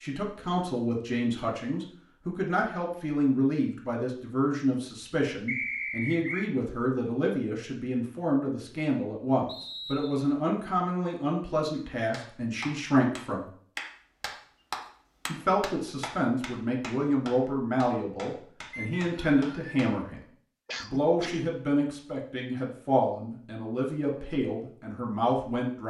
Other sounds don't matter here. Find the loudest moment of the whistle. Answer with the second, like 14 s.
6 s.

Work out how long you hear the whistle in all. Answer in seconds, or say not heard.
3 s.